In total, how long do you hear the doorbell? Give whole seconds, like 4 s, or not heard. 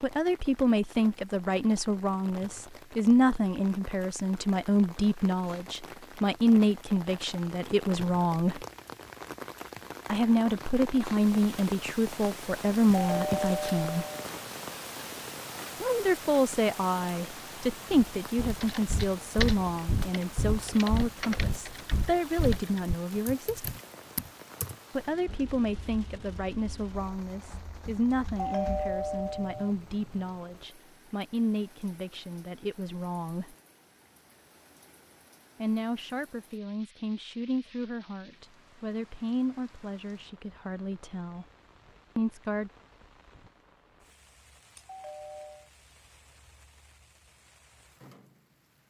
3 s.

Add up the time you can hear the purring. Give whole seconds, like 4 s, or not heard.
not heard.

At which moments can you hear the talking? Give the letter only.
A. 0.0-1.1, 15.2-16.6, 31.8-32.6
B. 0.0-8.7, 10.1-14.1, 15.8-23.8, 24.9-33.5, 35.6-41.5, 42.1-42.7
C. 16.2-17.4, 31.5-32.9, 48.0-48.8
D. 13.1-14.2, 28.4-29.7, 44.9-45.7
B.